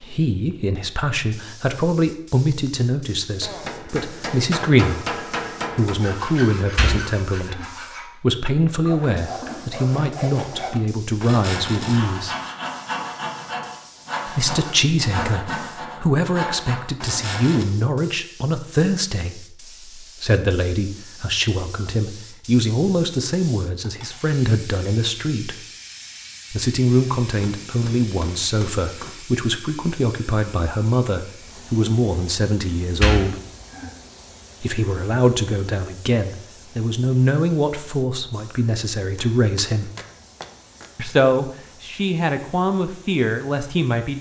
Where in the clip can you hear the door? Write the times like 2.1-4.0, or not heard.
6.5-7.7, 32.8-33.9.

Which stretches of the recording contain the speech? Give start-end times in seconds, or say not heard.
0.0-12.3, 14.2-25.6, 26.5-33.4, 34.6-39.9, 41.0-44.1.